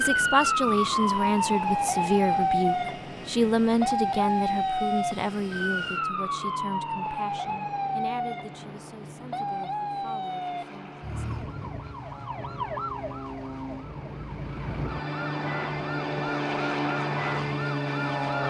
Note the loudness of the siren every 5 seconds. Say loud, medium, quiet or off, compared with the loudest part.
loud, medium, medium, medium.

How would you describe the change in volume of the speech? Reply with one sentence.
The volume of the speech goes down.